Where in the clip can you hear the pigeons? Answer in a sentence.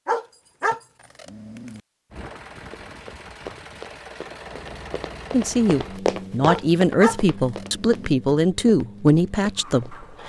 The pigeons can't be heard in this clip.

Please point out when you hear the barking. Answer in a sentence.
The barking can be heard from 0.1 to 1.8 s and from 6.5 to 8.1 s.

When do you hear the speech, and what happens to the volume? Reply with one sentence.
You can hear the speech from 5.3 to 10.2 s, at a steady volume.